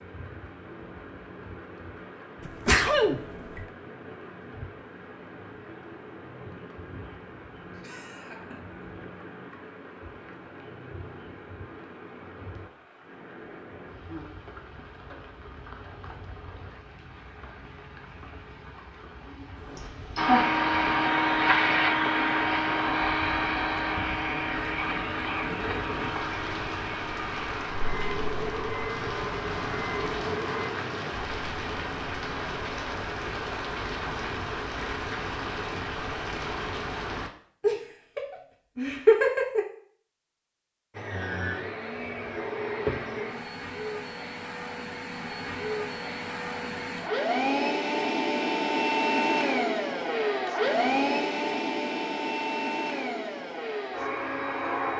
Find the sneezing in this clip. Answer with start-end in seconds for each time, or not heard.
2.5-3.6.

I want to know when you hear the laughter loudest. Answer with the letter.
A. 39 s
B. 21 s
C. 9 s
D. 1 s
A.